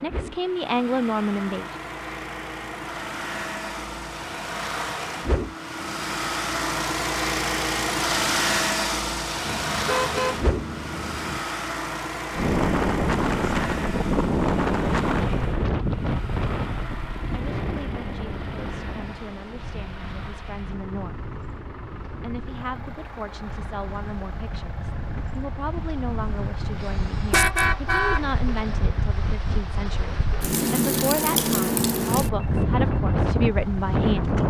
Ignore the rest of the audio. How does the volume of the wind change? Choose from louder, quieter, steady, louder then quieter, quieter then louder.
quieter then louder.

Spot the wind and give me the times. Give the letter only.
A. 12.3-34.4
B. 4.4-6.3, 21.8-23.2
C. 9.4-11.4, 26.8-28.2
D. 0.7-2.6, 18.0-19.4
A.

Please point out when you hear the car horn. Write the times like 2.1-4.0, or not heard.
9.4-11.4, 26.8-28.2.